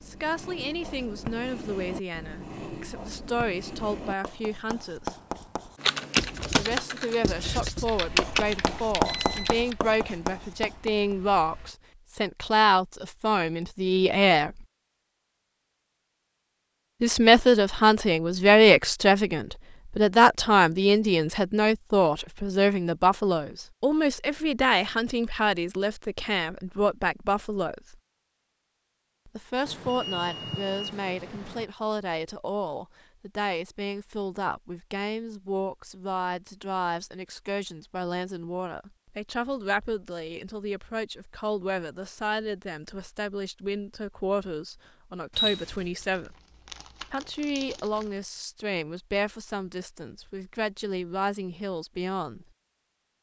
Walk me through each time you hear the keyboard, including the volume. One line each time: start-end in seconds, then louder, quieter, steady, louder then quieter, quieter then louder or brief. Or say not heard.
5.8-11.7 quieter.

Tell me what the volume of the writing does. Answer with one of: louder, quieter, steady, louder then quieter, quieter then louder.
louder.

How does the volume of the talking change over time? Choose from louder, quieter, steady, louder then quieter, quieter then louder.
louder then quieter.